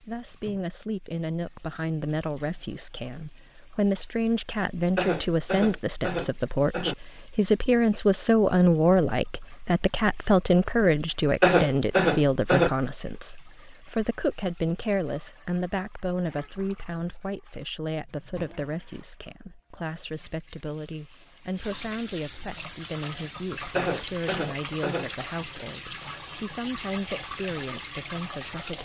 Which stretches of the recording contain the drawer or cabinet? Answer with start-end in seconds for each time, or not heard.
not heard.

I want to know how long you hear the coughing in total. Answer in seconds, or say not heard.
5 s.